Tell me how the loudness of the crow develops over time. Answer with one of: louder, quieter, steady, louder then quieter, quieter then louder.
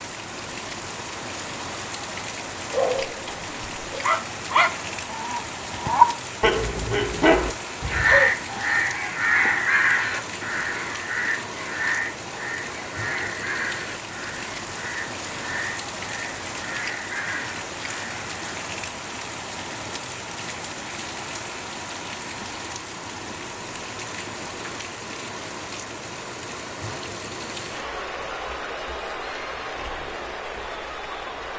quieter.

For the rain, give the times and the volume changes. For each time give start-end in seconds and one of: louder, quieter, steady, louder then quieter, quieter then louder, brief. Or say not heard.
0.0-31.5 steady.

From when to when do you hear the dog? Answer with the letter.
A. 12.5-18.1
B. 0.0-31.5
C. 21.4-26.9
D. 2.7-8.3
D.